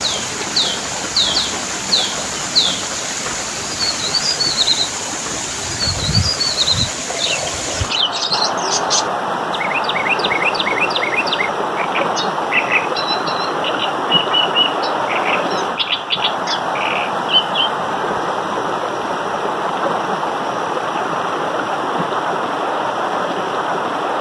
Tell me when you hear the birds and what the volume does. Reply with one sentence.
The birds can be heard from 0.0 to 17.7 s, at a steady volume.